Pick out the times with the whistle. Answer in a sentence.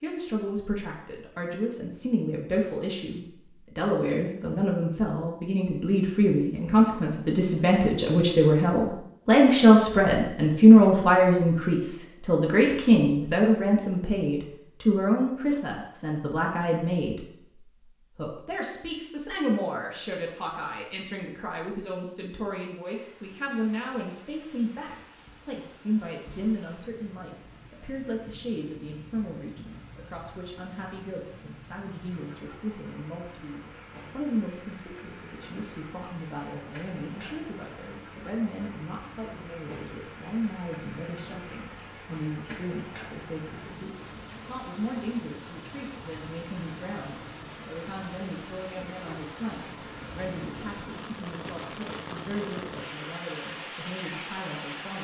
You can't hear the whistle here.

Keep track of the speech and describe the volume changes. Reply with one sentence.
The loudness of the speech goes down.